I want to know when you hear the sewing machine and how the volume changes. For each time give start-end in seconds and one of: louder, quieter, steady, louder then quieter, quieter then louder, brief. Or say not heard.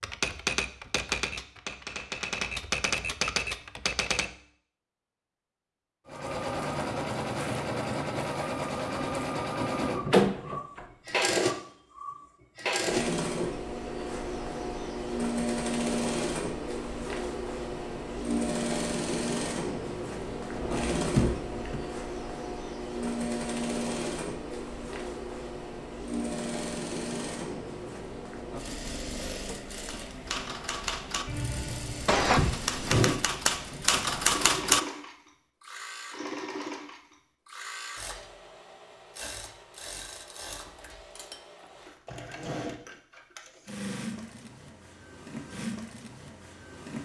6.0-47.0 quieter.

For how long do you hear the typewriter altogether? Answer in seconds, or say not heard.
9 s.